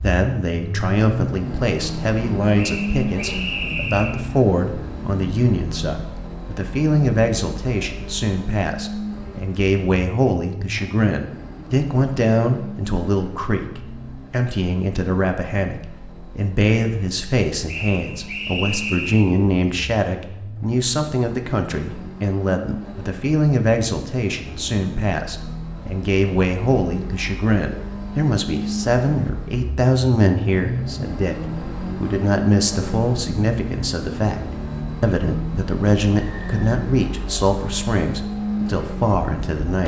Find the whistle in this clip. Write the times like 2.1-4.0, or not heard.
2.5-4.2, 17.6-19.3, 36.2-36.8.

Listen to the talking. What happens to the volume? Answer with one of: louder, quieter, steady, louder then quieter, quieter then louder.
steady.